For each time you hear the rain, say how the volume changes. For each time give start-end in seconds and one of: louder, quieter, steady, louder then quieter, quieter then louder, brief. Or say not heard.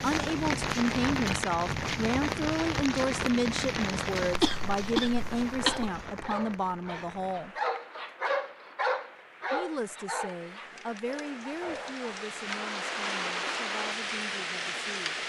0.0-15.2 quieter then louder.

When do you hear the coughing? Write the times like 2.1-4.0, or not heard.
4.3-5.9.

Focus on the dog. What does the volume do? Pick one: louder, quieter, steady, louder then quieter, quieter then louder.
louder then quieter.